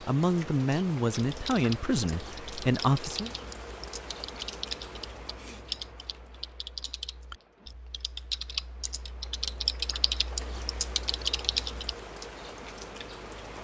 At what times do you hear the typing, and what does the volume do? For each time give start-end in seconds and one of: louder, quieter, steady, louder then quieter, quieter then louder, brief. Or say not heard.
1.2-11.9 louder.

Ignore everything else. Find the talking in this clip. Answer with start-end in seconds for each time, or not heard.
0.1-3.3.